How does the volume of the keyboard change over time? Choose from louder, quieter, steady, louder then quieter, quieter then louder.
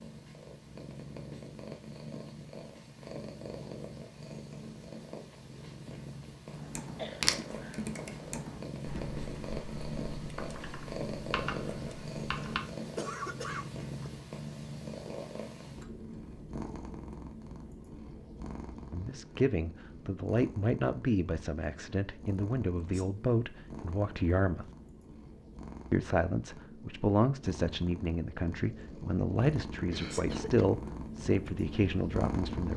quieter then louder.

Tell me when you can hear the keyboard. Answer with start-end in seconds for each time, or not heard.
6.5-12.6.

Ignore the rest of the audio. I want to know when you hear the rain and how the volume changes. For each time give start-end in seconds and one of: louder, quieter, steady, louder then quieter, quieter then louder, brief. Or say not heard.
not heard.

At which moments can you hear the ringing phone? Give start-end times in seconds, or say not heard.
not heard.